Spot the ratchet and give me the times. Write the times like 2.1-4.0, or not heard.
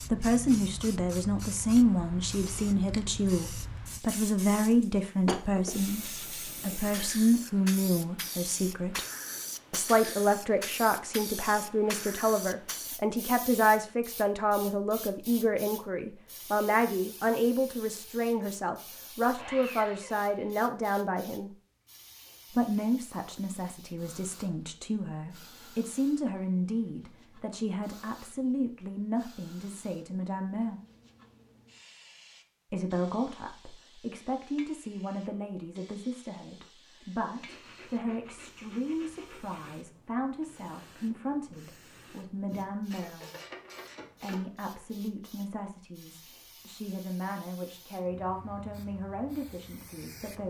42.5-44.5.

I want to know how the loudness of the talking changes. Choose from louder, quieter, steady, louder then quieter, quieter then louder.
quieter.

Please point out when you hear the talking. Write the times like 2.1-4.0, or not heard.
0.1-9.1, 9.7-21.5, 22.5-30.8, 32.7-43.3, 44.2-50.4.